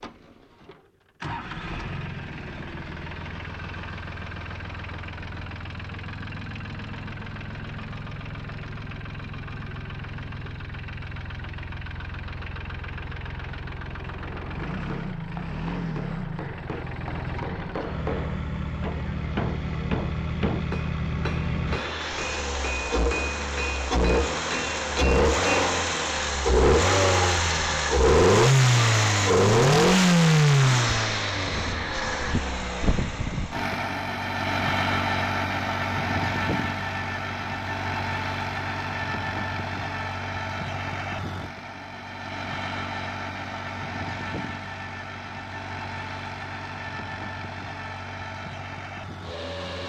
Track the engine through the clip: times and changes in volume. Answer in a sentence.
You can hear the engine from 0.0 to 49.8 s, getting louder then quieter.